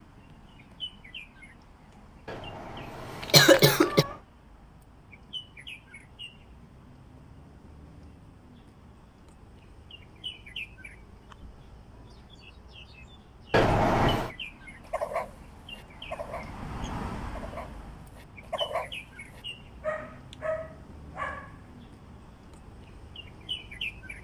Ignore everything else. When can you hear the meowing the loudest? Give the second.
14 s.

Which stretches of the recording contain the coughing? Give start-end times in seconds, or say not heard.
3.2-4.0.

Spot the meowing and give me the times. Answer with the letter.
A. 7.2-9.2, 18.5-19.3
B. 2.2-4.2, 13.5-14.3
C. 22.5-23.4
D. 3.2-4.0
B.